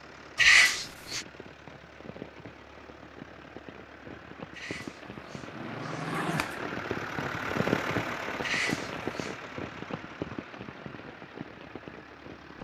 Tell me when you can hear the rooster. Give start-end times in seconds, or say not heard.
not heard.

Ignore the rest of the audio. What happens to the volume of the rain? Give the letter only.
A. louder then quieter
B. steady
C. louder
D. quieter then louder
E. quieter
A.